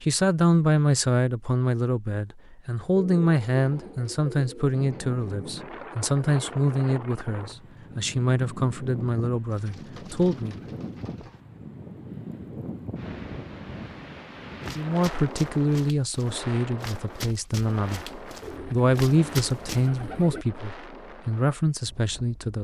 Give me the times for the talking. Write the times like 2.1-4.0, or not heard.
0.0-10.6, 14.8-22.5.